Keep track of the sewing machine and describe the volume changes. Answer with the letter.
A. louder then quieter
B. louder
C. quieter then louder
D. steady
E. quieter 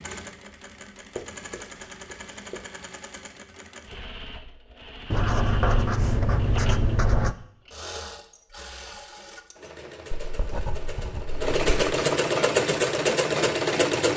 B.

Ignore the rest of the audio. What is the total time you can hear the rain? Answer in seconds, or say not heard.
not heard.